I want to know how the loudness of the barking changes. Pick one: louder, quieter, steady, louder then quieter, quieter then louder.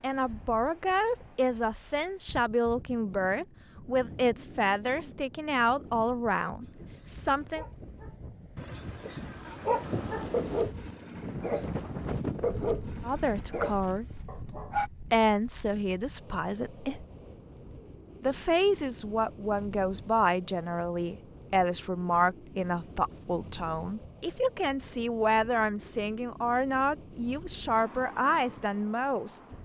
louder then quieter.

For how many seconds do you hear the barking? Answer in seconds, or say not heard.
8 s.